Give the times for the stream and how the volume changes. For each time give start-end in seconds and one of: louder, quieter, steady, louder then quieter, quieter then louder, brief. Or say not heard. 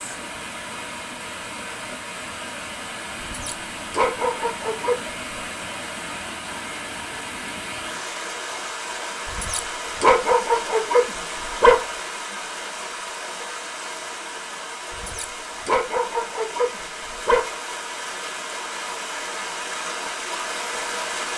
0.0-21.3 steady.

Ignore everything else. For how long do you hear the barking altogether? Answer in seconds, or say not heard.
7 s.